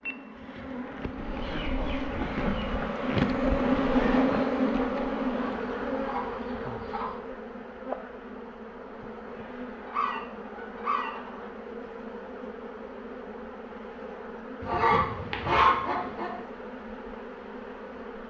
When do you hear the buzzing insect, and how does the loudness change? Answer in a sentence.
The buzzing insect can be heard from 0.0 to 18.2 s, getting quieter.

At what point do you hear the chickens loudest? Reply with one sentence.
The loudest moment of the chickens is at 16 seconds.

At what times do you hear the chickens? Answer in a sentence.
You can hear the chickens from 1.1 to 2.9 s, from 5.3 to 7.2 s, from 9.8 to 11.4 s and from 14.6 to 16.3 s.